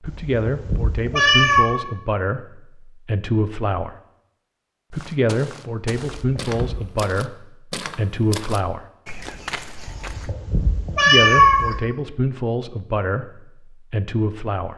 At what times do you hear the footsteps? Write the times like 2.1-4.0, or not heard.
4.9-10.3.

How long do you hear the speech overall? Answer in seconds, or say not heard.
12 s.